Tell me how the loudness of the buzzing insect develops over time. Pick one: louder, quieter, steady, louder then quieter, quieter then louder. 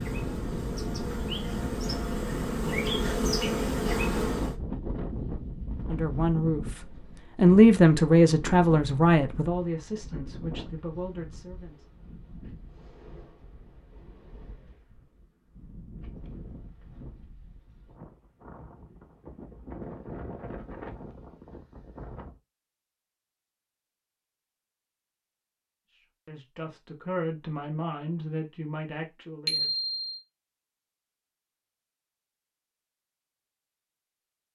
louder.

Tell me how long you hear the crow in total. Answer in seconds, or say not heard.
not heard.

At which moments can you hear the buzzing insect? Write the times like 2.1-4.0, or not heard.
0.0-4.5.